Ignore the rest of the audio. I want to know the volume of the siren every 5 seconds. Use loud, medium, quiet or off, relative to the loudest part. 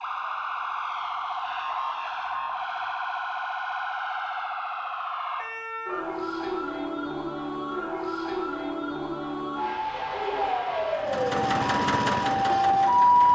medium, medium, loud.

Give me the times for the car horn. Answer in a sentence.
The car horn can't be heard in this clip.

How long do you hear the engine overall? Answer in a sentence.
The engine can be heard for 2 seconds in total.